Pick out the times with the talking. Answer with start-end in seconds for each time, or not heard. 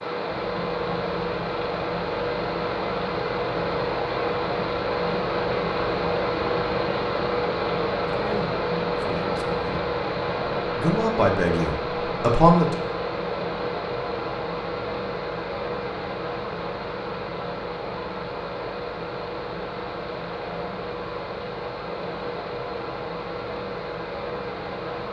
8.2-9.7, 10.8-12.8.